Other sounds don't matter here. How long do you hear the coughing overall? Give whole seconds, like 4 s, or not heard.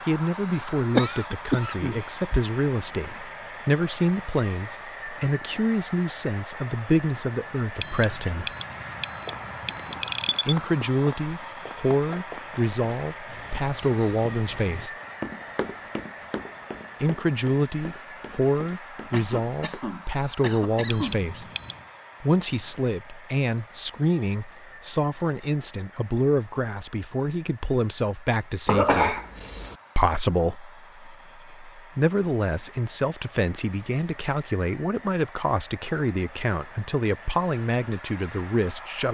5 s.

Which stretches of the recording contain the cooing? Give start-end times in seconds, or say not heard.
not heard.